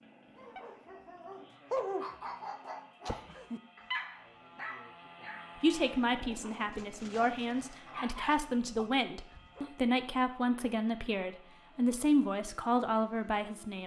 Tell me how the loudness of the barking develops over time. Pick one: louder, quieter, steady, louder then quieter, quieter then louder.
quieter then louder.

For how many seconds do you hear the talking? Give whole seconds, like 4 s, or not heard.
8 s.